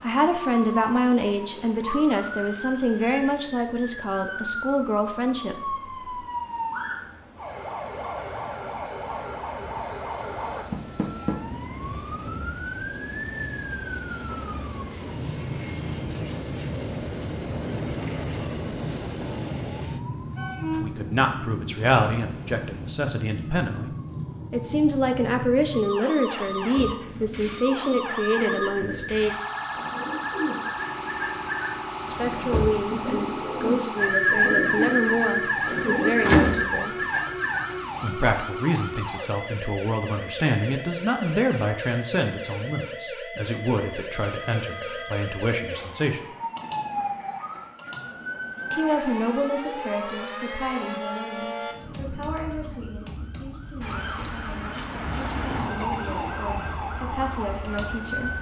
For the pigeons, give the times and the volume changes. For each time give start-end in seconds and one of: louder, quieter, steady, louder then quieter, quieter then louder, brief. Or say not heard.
26.4-38.1 louder.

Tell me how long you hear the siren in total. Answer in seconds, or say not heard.
58 s.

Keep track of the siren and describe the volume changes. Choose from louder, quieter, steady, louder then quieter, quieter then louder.
steady.